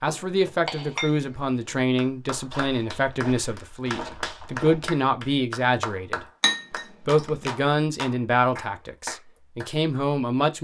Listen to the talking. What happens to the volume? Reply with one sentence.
The loudness of the talking stays about the same.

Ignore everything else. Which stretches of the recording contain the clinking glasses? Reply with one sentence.
The clinking glasses can be heard from 0.1 to 1.8 s and from 6.4 to 7.5 s.